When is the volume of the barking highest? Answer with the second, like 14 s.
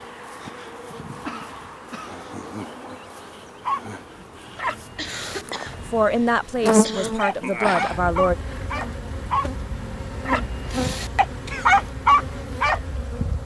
12 s.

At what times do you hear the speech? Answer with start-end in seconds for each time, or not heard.
5.8-8.3.